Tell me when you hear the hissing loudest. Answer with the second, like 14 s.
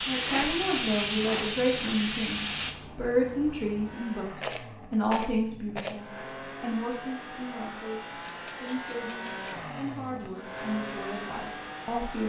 1 s.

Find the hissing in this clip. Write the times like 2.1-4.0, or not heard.
0.0-2.8, 9.6-12.2.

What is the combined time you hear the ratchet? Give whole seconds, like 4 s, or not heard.
not heard.